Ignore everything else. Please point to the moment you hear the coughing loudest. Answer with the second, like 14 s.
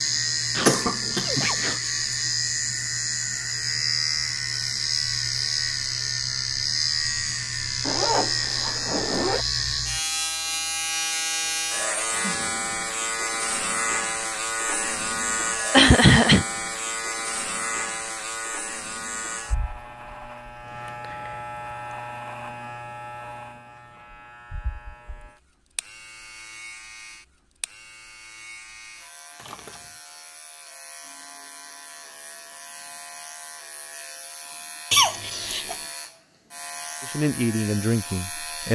16 s.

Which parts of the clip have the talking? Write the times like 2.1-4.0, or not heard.
37.0-38.6.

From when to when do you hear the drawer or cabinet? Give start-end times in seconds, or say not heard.
not heard.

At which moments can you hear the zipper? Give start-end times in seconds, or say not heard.
7.8-9.4, 29.4-29.9.